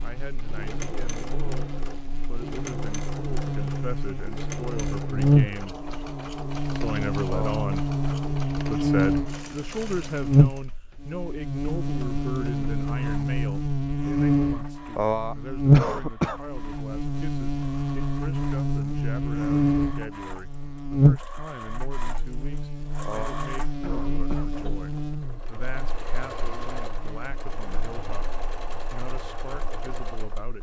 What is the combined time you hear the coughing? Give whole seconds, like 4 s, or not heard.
4 s.